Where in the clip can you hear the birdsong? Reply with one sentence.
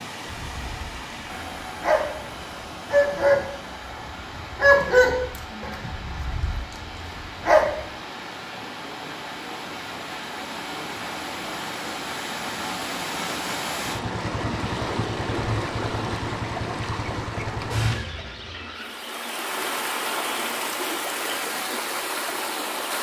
You can't hear the birdsong here.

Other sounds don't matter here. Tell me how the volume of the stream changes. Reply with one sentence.
The loudness of the stream goes up.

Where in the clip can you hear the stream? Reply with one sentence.
You can hear the stream from 0.0 to 22.9 s.